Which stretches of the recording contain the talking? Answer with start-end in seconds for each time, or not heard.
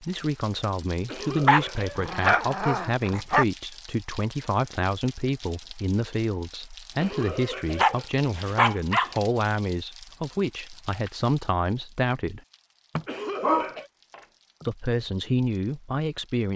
0.0-12.4, 14.7-16.5.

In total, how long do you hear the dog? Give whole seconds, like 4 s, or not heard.
5 s.